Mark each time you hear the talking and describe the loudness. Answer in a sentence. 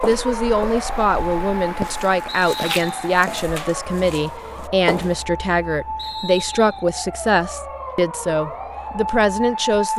You can hear the talking from 0.0 to 9.9 s, at a steady volume.